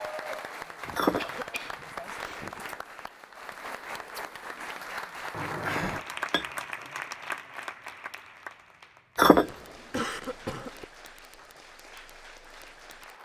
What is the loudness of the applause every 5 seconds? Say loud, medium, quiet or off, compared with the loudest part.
loud, loud, medium.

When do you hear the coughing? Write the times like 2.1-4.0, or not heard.
0.8-2.6, 5.3-6.0, 9.4-10.8.